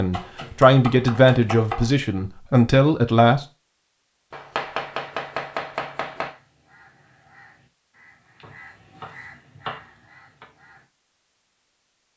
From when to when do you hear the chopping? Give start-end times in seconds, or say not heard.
0.1-1.9, 4.3-6.3, 8.4-10.4.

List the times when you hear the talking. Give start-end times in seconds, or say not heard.
0.0-3.5.